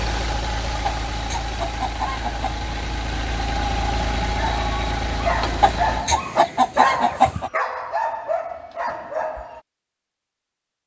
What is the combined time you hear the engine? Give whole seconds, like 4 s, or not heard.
6 s.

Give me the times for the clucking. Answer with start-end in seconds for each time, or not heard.
0.8-2.6, 5.6-7.5.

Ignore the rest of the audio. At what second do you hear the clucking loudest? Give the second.
7 s.